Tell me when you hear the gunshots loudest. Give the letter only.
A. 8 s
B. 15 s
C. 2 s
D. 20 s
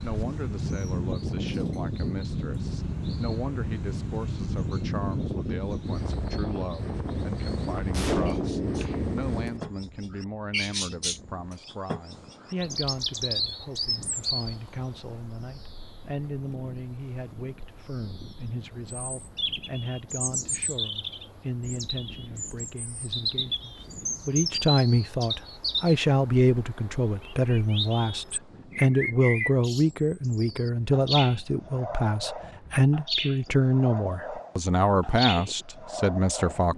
A.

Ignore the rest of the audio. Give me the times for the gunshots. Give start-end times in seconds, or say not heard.
7.9-9.6.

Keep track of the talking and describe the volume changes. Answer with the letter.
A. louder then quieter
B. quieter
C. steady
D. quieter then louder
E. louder
E.